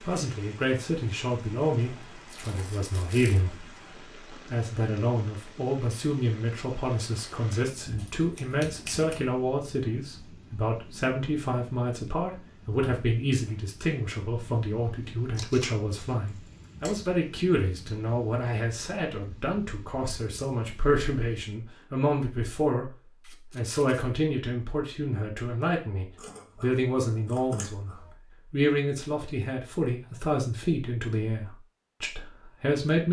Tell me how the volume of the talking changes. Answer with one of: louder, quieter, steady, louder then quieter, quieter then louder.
steady.